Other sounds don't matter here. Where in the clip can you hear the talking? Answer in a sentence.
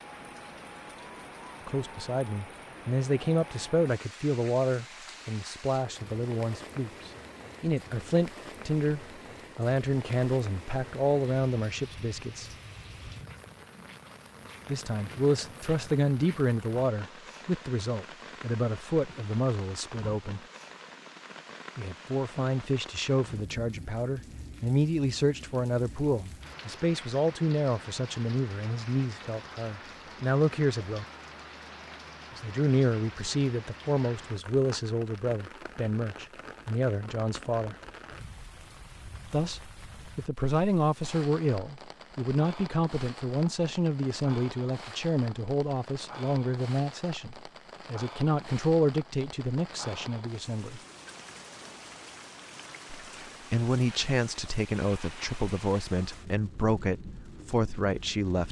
The talking can be heard from 1.6 to 12.5 s, from 14.7 to 20.4 s, from 21.8 to 31.1 s, from 32.4 to 37.8 s, from 39.3 to 50.8 s and from 53.0 to 58.4 s.